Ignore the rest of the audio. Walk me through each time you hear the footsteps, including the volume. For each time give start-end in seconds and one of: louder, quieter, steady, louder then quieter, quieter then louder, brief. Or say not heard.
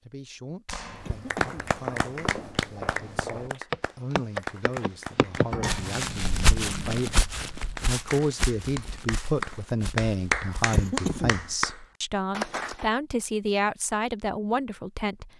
0.8-10.8 louder then quieter.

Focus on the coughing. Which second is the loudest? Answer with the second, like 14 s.
11 s.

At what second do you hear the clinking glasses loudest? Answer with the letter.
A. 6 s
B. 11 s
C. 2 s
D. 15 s
A.